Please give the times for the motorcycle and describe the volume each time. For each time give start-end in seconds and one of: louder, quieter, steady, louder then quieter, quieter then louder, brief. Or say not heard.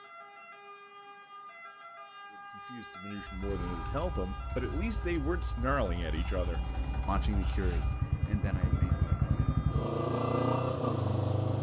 3.1-11.5 louder.